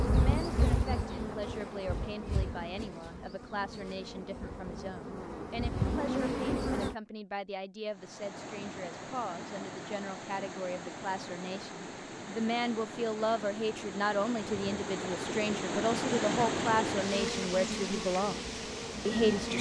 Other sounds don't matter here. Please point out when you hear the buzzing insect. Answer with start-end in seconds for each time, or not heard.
0.0-7.0, 17.1-19.5.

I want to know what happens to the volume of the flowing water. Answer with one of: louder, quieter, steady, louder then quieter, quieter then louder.
louder then quieter.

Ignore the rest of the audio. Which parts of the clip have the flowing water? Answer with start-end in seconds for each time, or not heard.
7.8-19.5.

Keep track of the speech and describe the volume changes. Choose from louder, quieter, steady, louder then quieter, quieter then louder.
louder.